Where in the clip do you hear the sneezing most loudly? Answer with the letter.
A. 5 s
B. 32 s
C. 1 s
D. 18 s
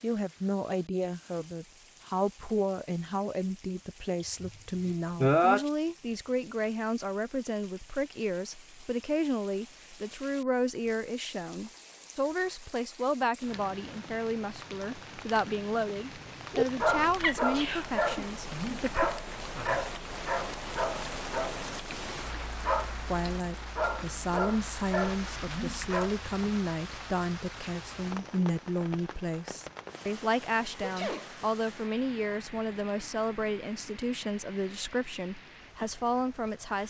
A.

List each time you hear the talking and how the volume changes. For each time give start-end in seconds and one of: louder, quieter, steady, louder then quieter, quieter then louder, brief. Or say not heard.
0.0-19.1 steady
23.1-36.8 steady.